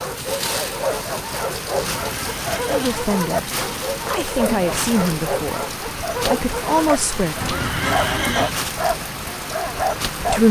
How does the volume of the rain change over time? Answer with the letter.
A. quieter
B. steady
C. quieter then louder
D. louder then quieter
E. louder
B.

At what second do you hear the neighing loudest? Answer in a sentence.
The volume of the neighing peaks at 8 seconds.